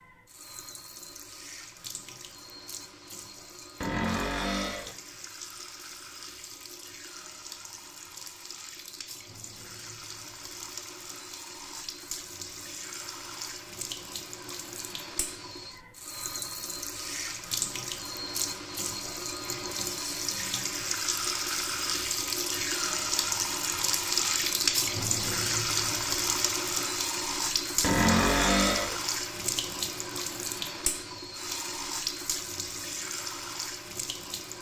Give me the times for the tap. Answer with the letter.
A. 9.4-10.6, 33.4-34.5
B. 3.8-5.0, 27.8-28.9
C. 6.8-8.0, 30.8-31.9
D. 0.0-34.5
D.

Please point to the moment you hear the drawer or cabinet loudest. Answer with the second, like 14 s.
28 s.